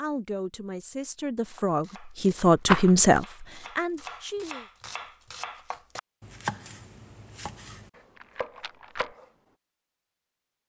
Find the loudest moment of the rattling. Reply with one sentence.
The volume of the rattling peaks at 3 seconds.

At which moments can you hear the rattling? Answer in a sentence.
The rattling can be heard from 2.6 to 3.0 s and from 8.2 to 9.1 s.